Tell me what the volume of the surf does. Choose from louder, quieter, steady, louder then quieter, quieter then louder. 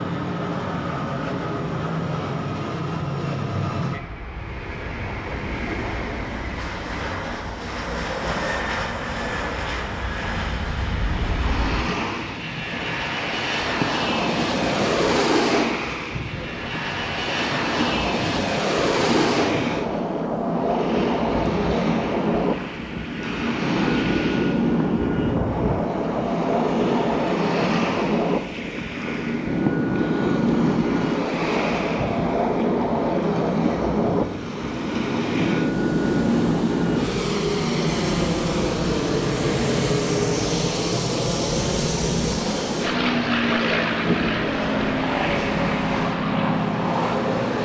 steady.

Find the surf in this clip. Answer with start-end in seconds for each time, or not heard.
11.1-47.6.